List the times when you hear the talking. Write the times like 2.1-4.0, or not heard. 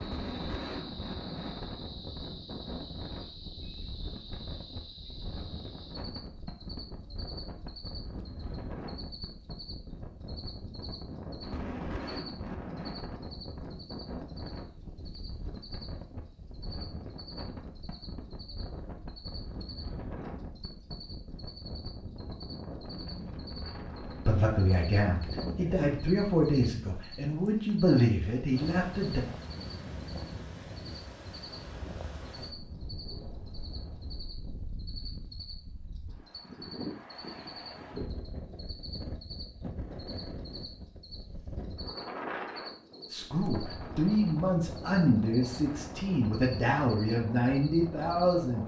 24.2-29.2, 43.1-48.6.